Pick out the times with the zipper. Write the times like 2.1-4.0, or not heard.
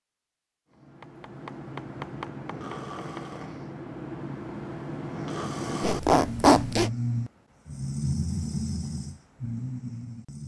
5.8-6.9.